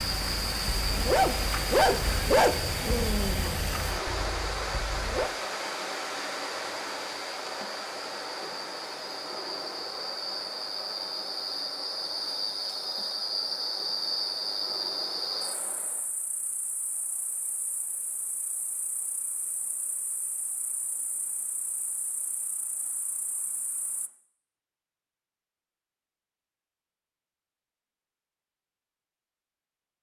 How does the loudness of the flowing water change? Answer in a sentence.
The volume of the flowing water goes down.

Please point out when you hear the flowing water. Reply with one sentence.
The flowing water can be heard from 0.0 to 16.1 s.